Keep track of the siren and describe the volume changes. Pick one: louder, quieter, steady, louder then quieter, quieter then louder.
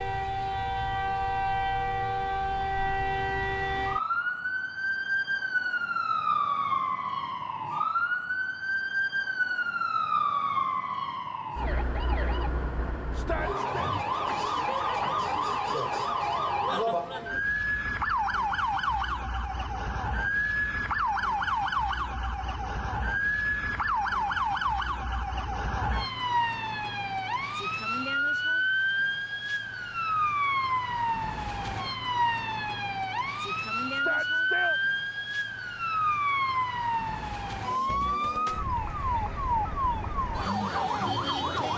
steady.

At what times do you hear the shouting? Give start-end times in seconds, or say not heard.
13.1-13.9, 33.9-34.8.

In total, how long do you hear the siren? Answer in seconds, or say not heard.
42 s.